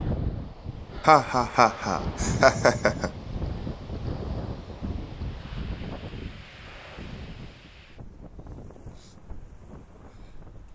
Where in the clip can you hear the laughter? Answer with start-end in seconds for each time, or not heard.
1.0-3.1.